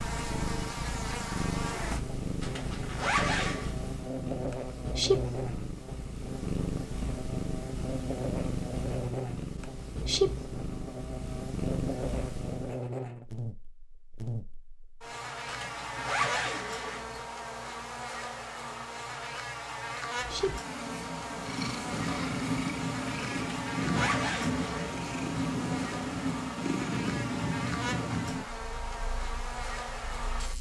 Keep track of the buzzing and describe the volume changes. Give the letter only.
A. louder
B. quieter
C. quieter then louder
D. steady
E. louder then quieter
D.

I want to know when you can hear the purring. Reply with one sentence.
The purring can be heard from 0.0 to 12.9 s and from 20.1 to 30.5 s.